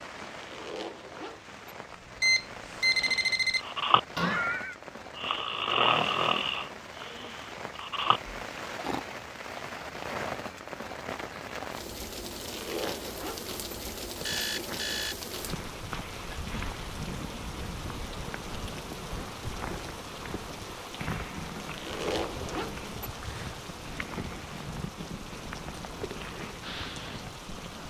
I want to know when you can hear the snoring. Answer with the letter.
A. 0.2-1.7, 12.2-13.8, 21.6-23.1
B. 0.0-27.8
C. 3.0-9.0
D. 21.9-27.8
C.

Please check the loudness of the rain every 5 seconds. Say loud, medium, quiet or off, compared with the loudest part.
medium, loud, loud, loud, loud, loud.